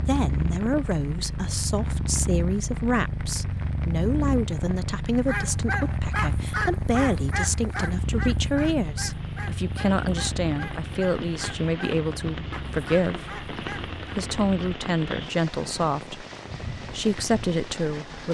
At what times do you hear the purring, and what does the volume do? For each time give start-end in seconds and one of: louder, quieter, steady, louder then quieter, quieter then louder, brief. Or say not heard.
0.0-14.8 quieter.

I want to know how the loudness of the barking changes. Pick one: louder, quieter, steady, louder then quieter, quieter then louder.
quieter.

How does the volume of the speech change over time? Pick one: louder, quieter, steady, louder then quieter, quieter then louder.
steady.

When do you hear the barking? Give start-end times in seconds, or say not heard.
5.2-13.9.